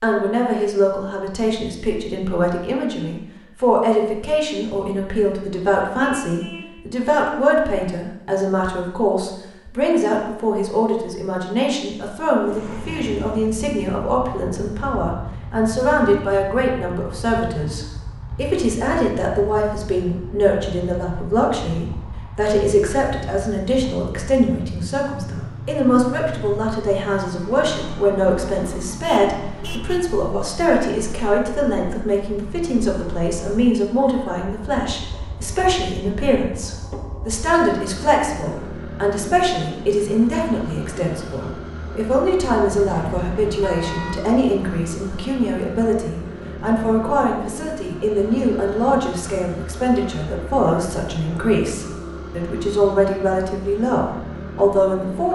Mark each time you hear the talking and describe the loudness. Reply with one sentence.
The talking can be heard from 0.0 to 55.2 s, at a steady volume.